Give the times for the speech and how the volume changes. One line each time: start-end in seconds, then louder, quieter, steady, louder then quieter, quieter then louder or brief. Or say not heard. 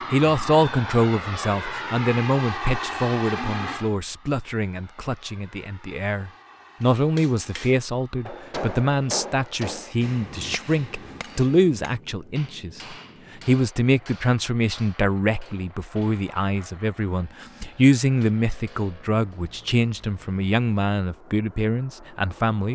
0.1-22.6 steady.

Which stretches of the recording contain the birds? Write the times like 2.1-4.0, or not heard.
not heard.